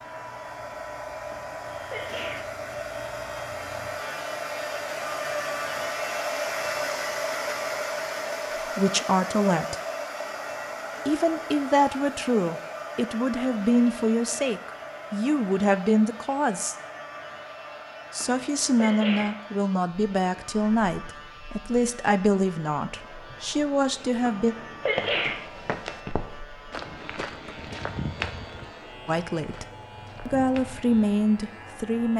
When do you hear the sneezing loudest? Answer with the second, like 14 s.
25 s.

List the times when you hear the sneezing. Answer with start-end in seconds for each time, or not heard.
1.3-2.5, 18.2-19.4, 24.2-25.4.